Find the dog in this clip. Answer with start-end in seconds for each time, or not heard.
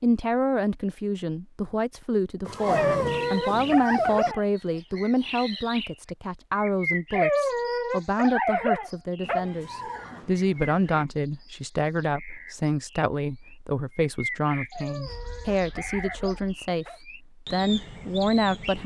2.6-4.4, 7.2-9.6, 14.7-17.0.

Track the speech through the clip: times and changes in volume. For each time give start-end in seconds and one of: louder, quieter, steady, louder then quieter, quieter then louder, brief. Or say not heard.
0.0-18.8 steady.